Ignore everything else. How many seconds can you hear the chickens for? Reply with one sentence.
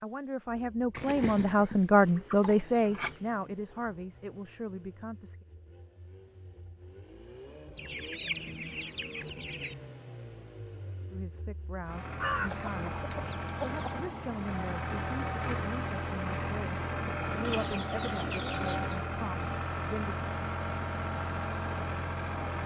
You can hear the chickens for 8 seconds altogether.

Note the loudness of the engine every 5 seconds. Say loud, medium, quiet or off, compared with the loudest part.
quiet, quiet, medium, loud, loud.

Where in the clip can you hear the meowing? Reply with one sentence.
You can't hear the meowing here.